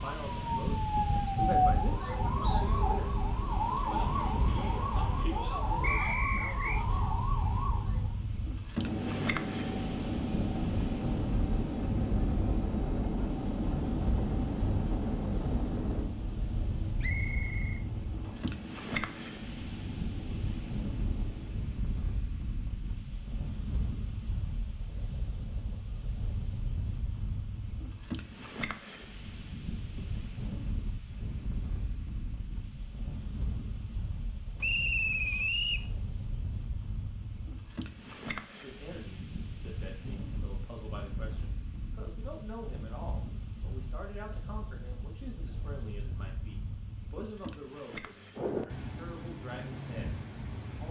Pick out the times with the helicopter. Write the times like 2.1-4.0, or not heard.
8.8-21.6.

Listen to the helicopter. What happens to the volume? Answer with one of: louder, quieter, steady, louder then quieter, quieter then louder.
quieter.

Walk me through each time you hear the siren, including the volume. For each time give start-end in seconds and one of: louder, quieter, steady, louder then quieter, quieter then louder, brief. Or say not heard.
0.0-8.2 quieter.